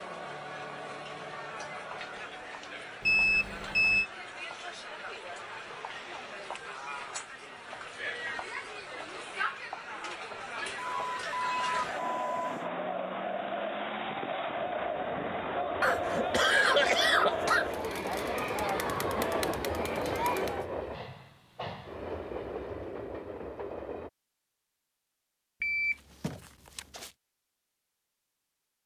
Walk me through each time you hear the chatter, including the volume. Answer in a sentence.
The chatter can be heard from 0.0 to 20.6 s, getting louder.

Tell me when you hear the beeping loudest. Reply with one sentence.
The loudest moment of the beeping is at 3 seconds.